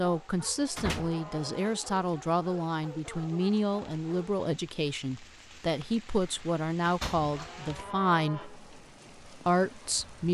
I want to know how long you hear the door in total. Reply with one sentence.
The door can be heard for 2 seconds in total.